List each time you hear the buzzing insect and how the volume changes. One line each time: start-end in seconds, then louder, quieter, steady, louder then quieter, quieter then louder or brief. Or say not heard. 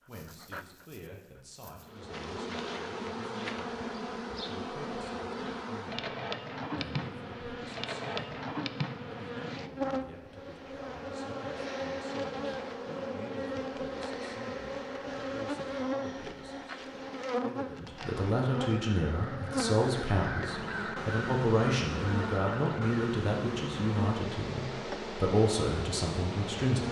1.9-26.8 steady.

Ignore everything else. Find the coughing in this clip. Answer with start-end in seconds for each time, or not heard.
not heard.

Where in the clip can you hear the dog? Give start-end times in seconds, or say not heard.
0.0-2.0.